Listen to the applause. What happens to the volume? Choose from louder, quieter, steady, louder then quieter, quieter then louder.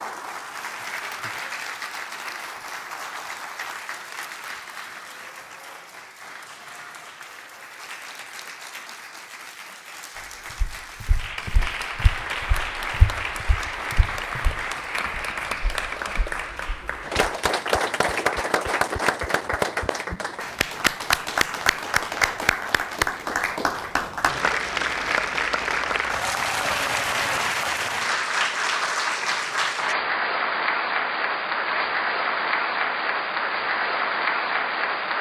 louder.